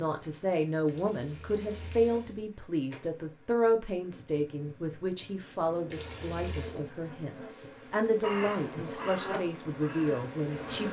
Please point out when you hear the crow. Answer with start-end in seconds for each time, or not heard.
8.2-10.8.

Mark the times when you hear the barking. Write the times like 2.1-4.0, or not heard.
not heard.